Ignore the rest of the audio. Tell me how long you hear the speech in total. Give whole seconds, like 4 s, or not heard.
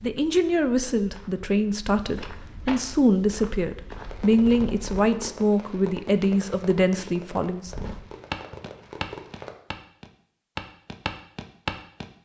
8 s.